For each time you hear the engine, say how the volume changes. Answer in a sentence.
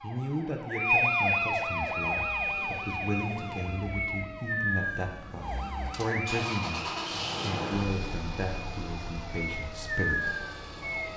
You can hear the engine from 1.8 to 11.1 s, getting louder then quieter.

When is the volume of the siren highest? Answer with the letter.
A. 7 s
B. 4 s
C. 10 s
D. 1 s
D.